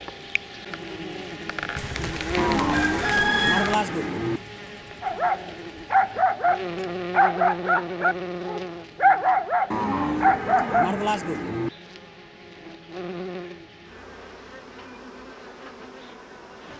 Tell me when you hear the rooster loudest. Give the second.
3 s.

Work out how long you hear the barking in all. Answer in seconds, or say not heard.
6 s.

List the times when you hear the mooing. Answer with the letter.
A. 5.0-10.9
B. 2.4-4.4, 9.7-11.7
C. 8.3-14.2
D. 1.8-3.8
B.